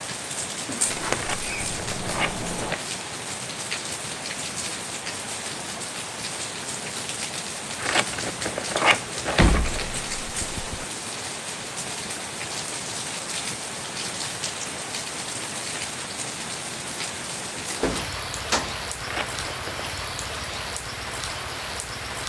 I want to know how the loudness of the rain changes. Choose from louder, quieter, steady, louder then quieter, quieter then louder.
steady.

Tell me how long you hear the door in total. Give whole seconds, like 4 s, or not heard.
5 s.